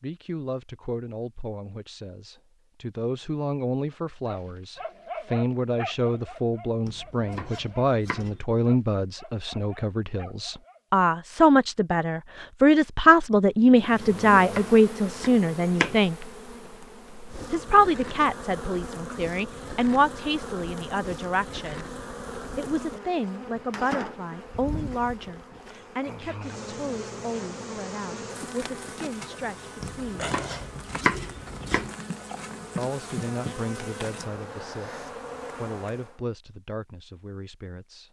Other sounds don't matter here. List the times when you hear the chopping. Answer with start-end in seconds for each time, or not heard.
6.8-8.4, 13.3-16.0, 29.8-31.9.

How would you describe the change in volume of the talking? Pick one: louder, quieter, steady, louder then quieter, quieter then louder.
louder then quieter.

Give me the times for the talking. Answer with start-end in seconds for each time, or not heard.
0.0-16.1, 17.5-21.9, 22.6-30.3, 32.8-38.0.